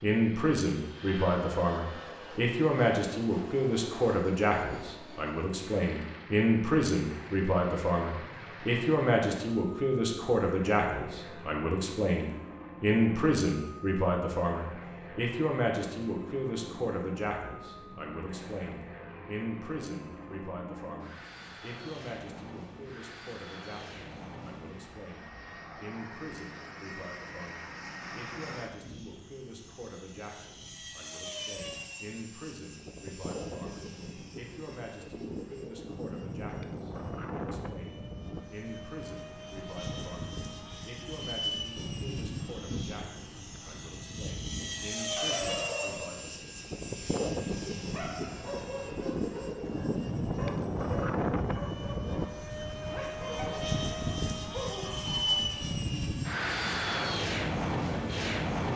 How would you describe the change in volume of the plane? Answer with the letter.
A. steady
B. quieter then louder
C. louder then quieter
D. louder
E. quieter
D.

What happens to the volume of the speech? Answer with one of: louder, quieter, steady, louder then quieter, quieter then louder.
quieter.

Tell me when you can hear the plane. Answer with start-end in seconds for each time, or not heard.
0.0-58.7.